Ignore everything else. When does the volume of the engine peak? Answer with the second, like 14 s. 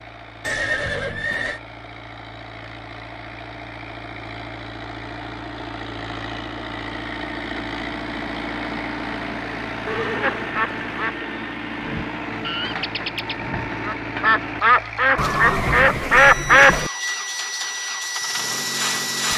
19 s.